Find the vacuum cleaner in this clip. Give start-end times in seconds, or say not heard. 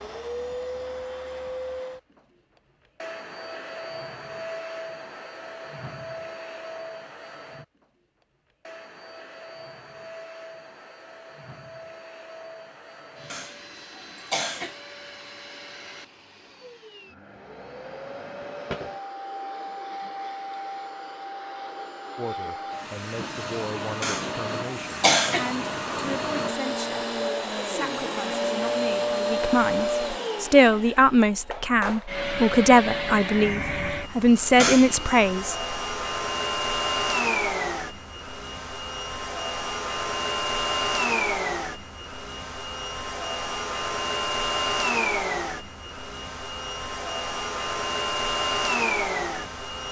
0.0-49.8.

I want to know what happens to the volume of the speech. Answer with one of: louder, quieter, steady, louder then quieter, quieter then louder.
louder.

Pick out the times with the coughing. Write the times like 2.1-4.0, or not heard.
13.3-14.8, 24.0-25.5, 34.5-35.1.